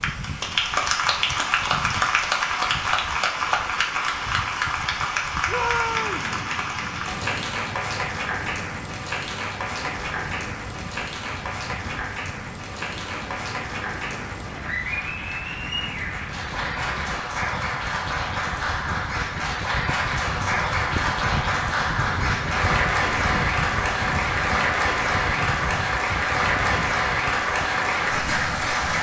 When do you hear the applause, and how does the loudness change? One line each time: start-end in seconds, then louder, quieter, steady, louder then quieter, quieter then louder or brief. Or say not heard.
0.0-28.9 quieter then louder.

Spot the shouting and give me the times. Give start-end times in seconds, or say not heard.
5.5-6.3.